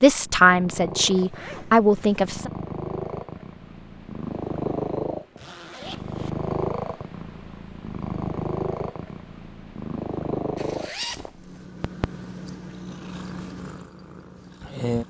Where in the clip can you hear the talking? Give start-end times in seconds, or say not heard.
0.0-2.5.